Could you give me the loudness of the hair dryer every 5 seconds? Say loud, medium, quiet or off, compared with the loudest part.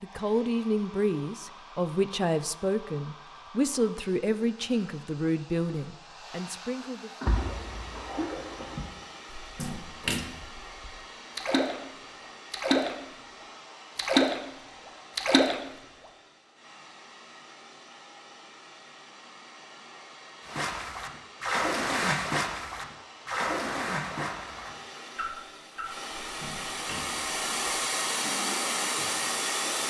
quiet, quiet, quiet, quiet, quiet, loud.